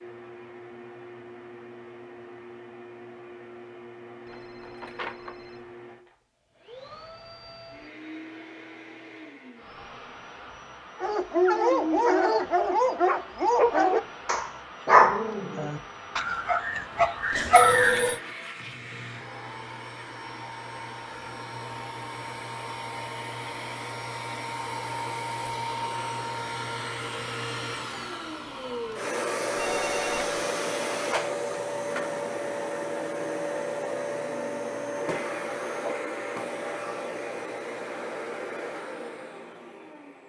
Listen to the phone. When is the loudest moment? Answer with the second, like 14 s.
18 s.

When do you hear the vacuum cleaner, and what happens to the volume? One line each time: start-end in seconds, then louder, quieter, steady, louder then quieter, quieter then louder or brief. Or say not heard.
0.0-40.2 louder.